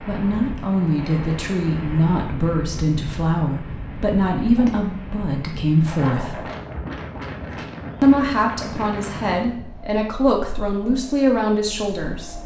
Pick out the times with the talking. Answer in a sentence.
You can hear the talking from 0.0 to 6.4 s and from 8.0 to 12.4 s.